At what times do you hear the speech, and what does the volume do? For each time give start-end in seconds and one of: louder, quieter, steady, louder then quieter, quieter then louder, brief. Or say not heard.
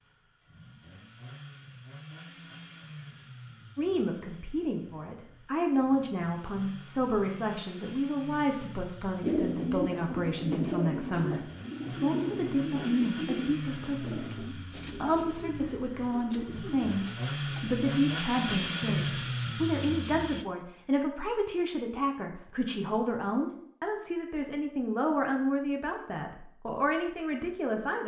3.8-28.0 steady.